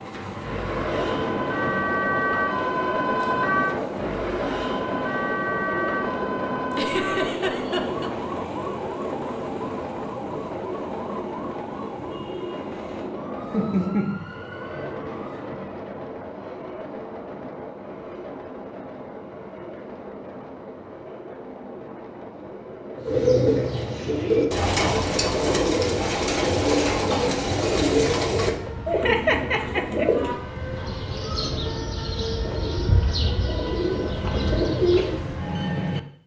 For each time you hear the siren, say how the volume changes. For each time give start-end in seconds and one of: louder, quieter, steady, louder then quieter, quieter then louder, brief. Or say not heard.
0.0-15.4 quieter.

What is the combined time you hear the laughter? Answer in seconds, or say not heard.
4 s.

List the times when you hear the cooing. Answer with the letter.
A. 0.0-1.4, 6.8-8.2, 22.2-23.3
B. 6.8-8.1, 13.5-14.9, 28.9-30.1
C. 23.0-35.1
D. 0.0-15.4
C.